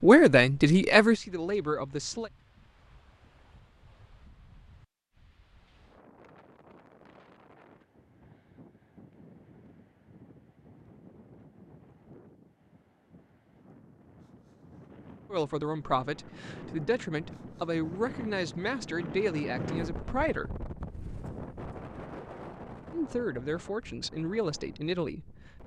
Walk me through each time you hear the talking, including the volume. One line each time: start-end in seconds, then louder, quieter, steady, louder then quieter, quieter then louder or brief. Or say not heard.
0.0-2.3 brief
15.3-20.5 steady
22.9-25.6 brief.